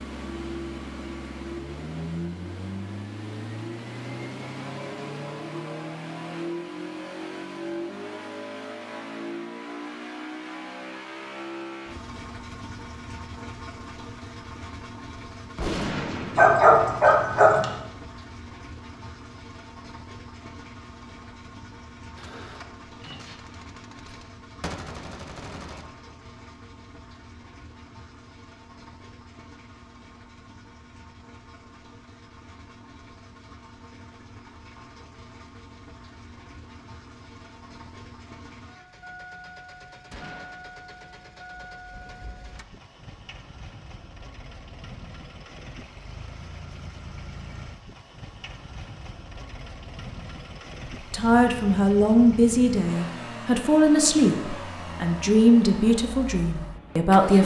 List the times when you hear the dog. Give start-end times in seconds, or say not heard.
16.4-17.7.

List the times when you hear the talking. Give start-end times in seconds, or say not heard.
51.1-57.4.